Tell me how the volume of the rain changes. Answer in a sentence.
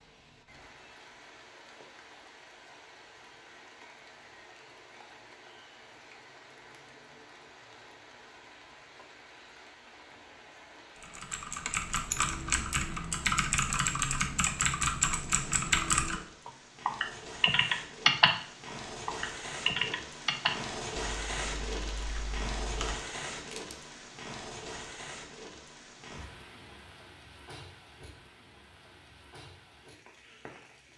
The loudness of the rain goes up, then down.